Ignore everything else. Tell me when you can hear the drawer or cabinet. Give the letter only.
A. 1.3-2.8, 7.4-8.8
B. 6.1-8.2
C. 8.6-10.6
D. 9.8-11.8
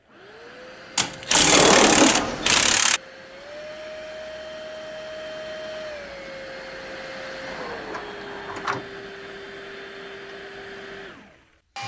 A.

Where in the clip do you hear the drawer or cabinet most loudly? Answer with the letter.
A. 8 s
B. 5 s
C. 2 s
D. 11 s
C.